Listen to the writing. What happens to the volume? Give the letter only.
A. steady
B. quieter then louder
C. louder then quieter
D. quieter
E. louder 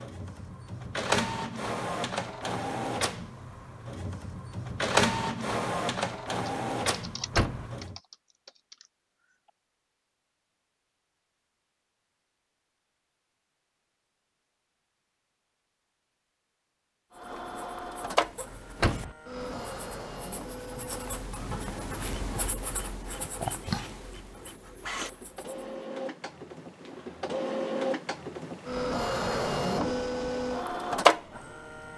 C.